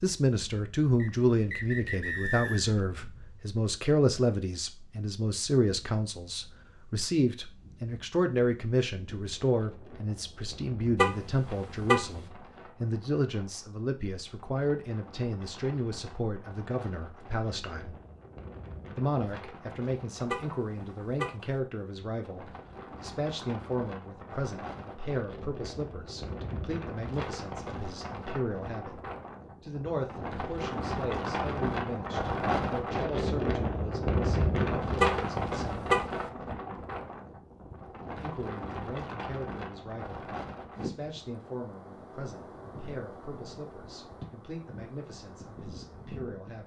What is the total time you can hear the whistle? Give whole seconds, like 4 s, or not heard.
2 s.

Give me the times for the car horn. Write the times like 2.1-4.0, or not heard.
10.9-12.2, 20.3-21.5, 35.0-36.2.